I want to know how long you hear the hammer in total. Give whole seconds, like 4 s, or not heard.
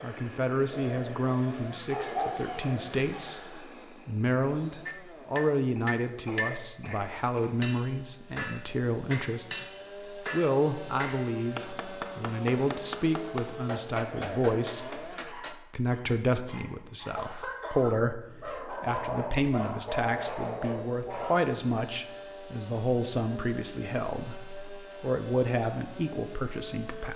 11 s.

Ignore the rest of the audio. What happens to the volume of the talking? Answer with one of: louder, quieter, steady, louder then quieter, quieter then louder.
steady.